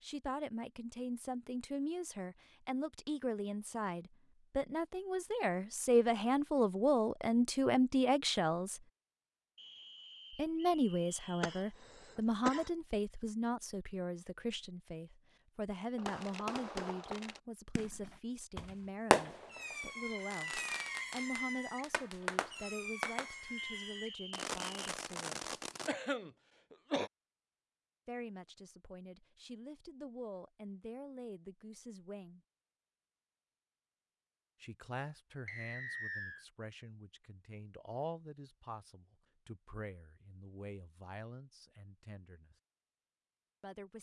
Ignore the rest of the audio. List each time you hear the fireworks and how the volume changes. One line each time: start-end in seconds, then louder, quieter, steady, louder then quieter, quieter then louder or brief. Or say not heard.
15.9-25.9 louder then quieter.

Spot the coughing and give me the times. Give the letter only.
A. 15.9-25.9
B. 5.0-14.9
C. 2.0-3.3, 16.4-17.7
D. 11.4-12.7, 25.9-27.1
D.